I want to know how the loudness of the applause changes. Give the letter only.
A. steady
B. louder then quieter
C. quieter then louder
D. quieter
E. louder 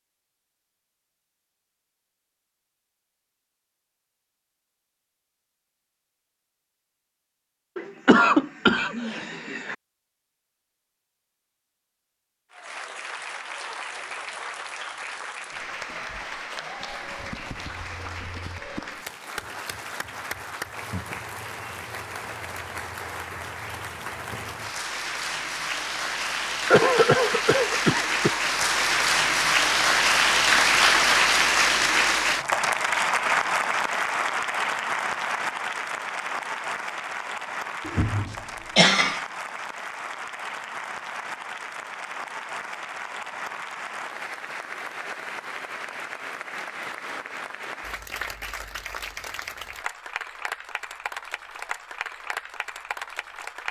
B.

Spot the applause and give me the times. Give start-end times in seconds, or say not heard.
12.5-53.6.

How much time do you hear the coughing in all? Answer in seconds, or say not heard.
5 s.